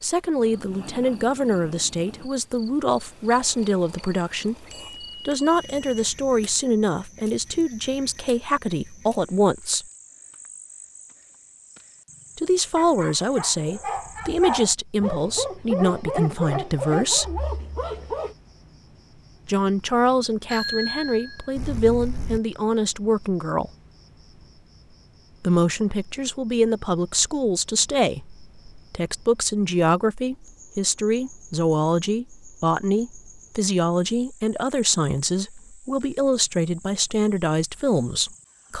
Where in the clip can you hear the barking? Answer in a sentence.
The barking can be heard from 12.8 to 18.4 s.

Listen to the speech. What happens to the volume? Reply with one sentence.
The volume of the speech stays about the same.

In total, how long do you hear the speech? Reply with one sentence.
You can hear the speech for 32 seconds altogether.